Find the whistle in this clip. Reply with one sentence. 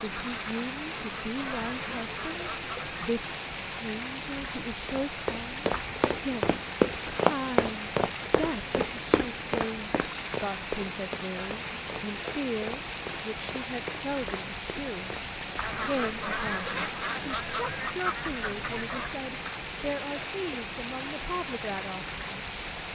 The whistle can't be heard in this clip.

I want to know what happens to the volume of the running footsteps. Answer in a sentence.
The loudness of the running footsteps goes down.